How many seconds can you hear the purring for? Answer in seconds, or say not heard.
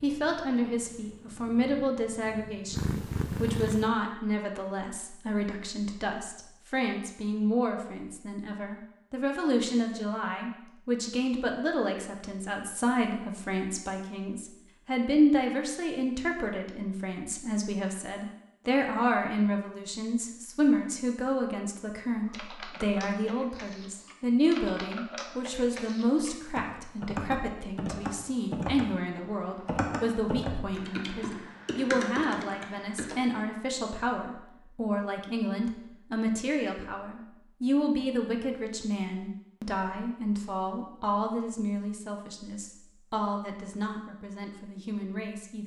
4 s.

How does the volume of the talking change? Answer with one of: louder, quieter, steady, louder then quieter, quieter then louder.
steady.